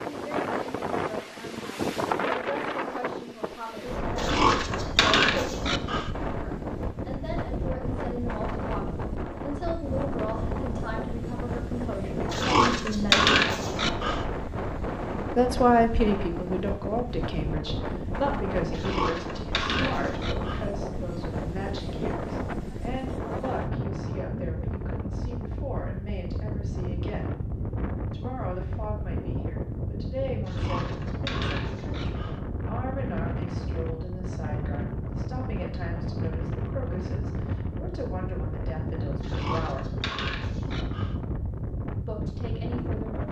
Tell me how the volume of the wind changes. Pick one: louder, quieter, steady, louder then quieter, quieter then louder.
steady.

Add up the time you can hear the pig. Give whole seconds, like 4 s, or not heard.
10 s.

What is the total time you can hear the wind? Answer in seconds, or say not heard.
43 s.